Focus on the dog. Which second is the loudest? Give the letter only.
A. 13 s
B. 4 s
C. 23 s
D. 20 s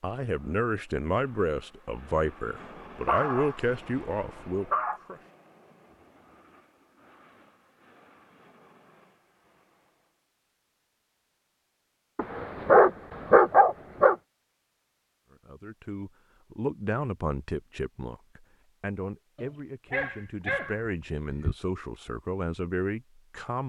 A.